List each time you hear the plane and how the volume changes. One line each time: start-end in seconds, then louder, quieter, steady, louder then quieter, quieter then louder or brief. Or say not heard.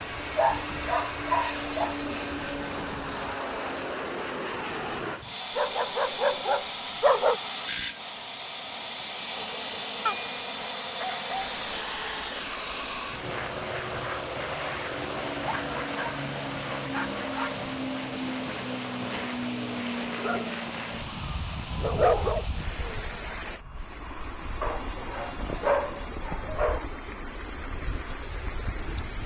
0.0-29.2 quieter.